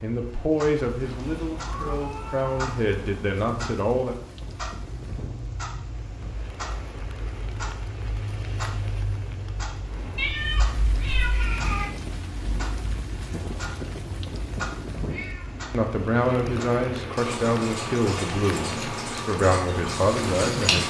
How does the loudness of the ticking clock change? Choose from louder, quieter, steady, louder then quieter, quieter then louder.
louder.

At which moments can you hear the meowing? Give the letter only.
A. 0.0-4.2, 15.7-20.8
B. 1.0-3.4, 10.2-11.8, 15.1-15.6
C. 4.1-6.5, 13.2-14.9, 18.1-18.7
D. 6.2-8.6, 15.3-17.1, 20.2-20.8
B.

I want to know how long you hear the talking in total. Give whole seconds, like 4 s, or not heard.
9 s.